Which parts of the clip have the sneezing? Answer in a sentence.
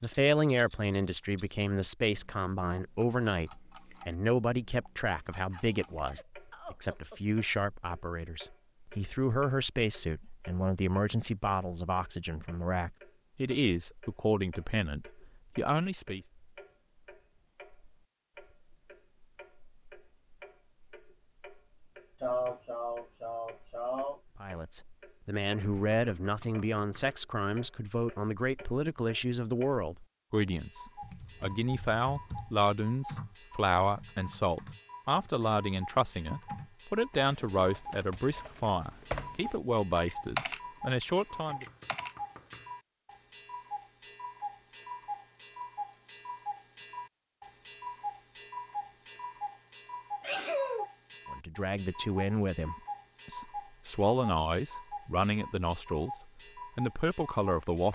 You can hear the sneezing from 5.5 to 7.2 s, from 22.2 to 24.2 s and from 50.2 to 50.9 s.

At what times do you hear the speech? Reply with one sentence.
The speech can be heard from 0.0 to 16.2 s, from 24.4 to 41.6 s and from 51.3 to 57.9 s.